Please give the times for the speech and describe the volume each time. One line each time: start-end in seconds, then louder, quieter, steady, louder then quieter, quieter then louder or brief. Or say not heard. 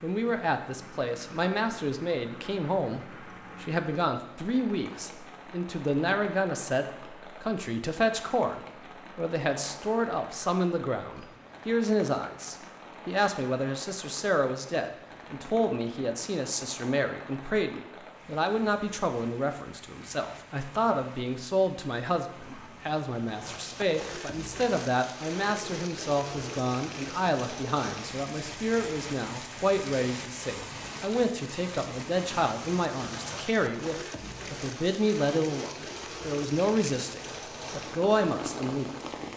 0.0-39.3 steady.